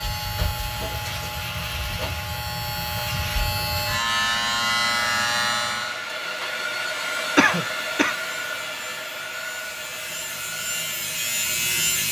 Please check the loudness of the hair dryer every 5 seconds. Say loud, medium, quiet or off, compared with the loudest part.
medium, loud, medium.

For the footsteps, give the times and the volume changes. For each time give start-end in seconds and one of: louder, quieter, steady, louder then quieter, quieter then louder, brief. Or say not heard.
not heard.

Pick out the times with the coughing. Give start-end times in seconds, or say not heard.
7.3-8.2.